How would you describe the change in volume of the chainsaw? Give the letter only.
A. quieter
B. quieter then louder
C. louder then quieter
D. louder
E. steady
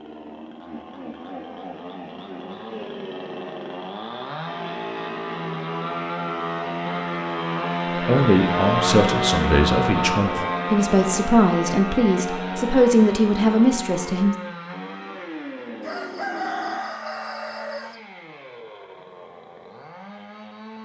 C.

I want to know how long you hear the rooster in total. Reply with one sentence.
The rooster can be heard for 2 seconds in total.